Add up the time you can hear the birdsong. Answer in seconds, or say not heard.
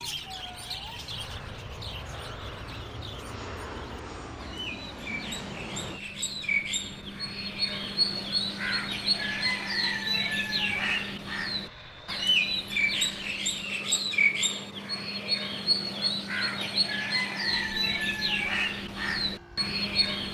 20 s.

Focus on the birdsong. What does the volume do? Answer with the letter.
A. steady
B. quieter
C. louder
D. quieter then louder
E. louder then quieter
C.